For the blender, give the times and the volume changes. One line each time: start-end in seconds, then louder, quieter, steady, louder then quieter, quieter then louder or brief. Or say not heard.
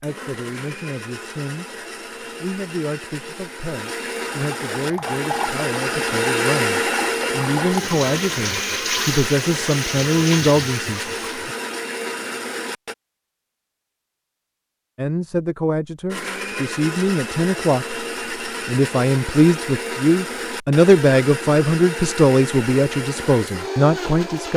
0.0-12.9 louder then quieter
16.1-24.5 steady.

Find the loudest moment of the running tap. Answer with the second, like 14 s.
9 s.